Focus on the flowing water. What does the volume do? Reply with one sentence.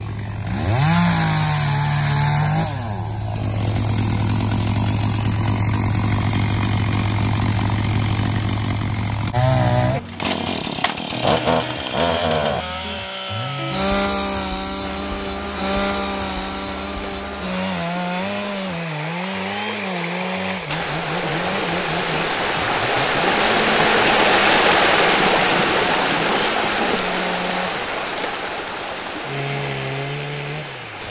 The volume of the flowing water goes up, then down.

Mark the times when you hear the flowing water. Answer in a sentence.
You can hear the flowing water from 14.8 to 31.0 s.